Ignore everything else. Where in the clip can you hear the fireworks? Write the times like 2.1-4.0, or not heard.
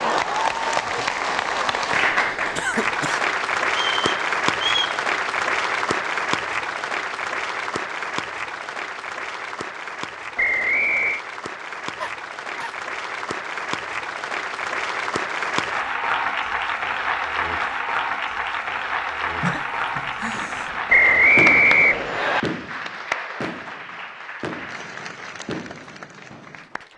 20.3-26.7.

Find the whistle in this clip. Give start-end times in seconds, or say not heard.
3.7-5.0, 10.3-11.2, 20.9-22.4.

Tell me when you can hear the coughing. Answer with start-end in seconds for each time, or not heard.
2.5-3.2, 12.0-12.8, 19.4-20.8.